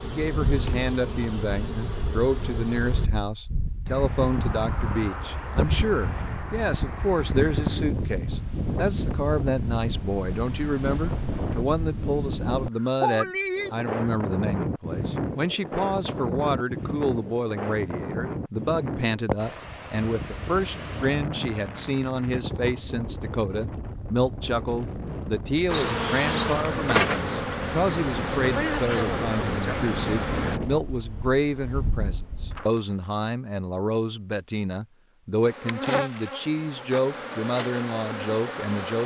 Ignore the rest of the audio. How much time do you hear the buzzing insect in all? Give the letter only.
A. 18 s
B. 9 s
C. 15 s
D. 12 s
D.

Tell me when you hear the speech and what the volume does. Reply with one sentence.
You can hear the speech from 0.0 to 39.0 s, at a steady volume.